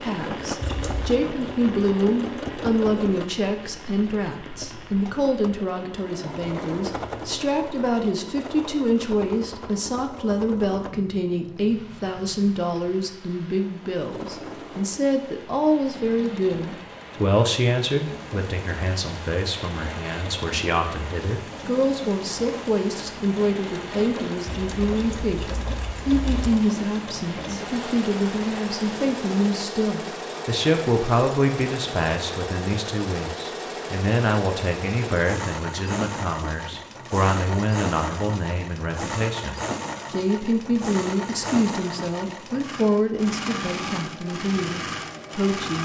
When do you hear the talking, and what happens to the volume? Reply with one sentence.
You can hear the talking from 0.0 to 45.8 s, at a steady volume.